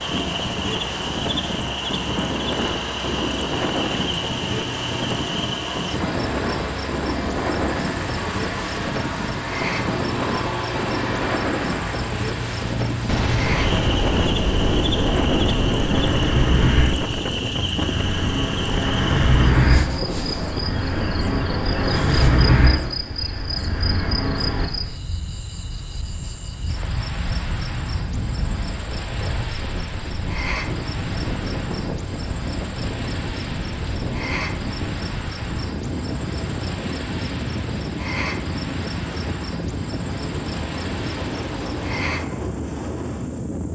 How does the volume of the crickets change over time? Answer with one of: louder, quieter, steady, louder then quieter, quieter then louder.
steady.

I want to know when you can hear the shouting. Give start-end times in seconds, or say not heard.
not heard.